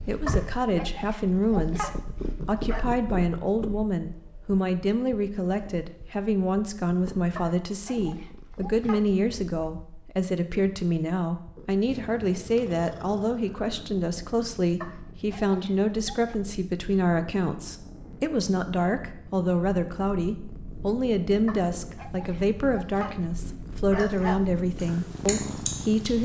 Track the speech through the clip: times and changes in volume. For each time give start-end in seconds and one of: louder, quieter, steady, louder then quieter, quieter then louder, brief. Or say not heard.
0.0-26.2 steady.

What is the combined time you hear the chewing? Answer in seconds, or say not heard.
2 s.